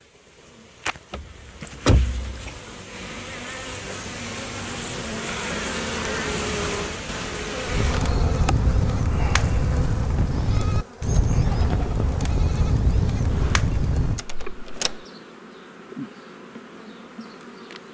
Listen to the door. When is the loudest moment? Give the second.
2 s.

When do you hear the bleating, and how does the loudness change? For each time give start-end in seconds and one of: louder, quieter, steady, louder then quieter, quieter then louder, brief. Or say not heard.
7.7-14.2 steady.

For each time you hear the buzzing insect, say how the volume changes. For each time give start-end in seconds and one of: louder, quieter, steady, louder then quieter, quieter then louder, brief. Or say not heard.
0.0-17.9 louder then quieter.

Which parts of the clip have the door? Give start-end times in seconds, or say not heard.
1.1-2.5, 14.2-14.9.